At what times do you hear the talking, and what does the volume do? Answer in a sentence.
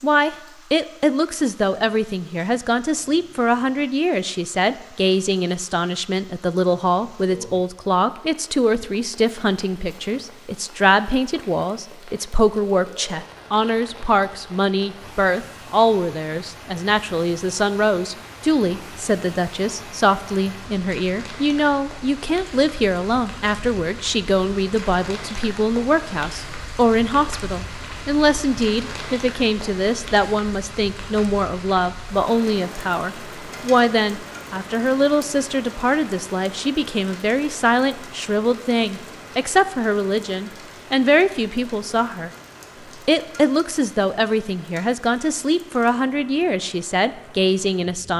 You can hear the talking from 0.0 to 42.3 s, at a steady volume; and from 43.0 to 48.1 s, at a steady volume.